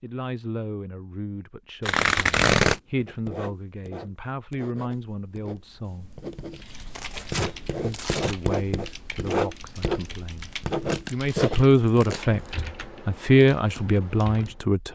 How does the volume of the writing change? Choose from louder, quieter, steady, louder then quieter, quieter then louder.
louder.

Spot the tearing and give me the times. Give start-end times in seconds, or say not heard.
1.9-2.8, 7.0-8.3, 10.3-12.5.